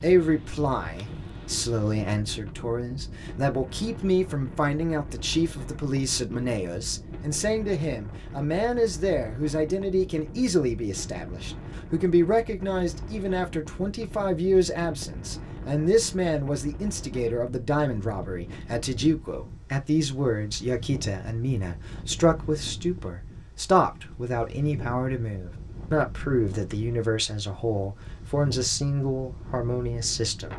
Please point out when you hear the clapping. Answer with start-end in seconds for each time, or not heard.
not heard.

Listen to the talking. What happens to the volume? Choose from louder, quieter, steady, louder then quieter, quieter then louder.
steady.